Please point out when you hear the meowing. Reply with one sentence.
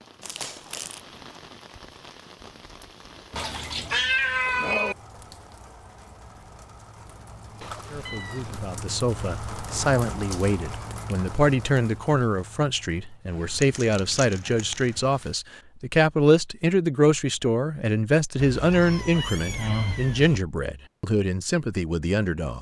You can hear the meowing from 3.3 to 5.0 s, from 7.6 to 8.6 s and from 18.4 to 20.4 s.